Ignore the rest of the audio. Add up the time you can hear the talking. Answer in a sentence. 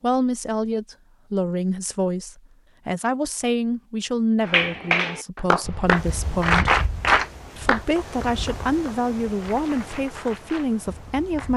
You can hear the talking for 11 seconds altogether.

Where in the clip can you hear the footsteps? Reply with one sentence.
You can't hear the footsteps here.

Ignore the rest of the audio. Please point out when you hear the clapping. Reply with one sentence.
The clapping can be heard from 4.5 to 11.5 s.